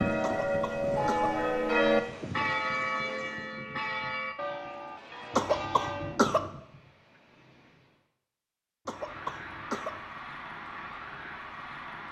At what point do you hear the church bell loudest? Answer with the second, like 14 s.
2 s.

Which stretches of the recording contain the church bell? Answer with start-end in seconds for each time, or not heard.
0.0-6.2.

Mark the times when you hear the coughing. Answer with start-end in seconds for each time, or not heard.
0.2-1.4, 5.3-6.5, 8.8-10.0.